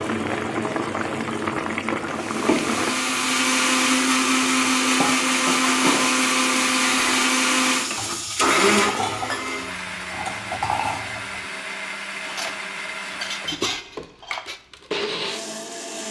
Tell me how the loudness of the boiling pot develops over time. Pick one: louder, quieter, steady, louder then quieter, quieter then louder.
quieter.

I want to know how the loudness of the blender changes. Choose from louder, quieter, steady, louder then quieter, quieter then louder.
quieter.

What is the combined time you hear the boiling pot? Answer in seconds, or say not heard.
8 s.